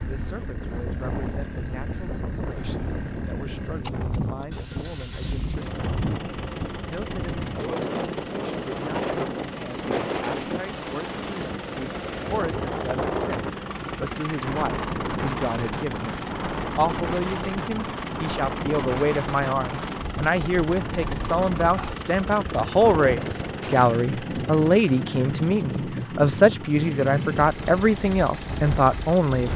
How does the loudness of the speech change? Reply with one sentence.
The volume of the speech goes up.